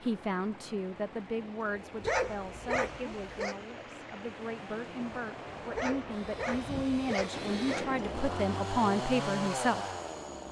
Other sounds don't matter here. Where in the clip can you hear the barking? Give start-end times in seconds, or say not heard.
2.0-3.5, 5.7-7.9.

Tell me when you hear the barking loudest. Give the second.
2 s.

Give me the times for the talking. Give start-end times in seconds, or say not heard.
0.0-9.8.